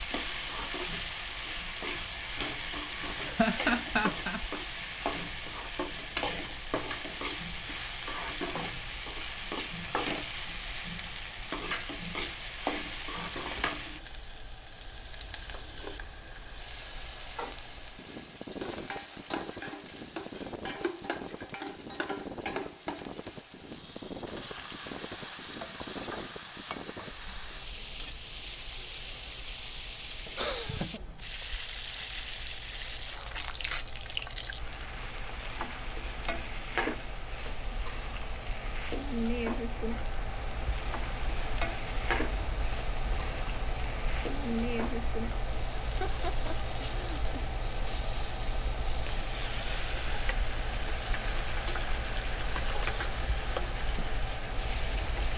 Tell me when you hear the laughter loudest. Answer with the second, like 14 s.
4 s.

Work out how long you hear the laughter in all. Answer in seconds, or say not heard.
4 s.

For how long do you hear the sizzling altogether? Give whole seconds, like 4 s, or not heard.
55 s.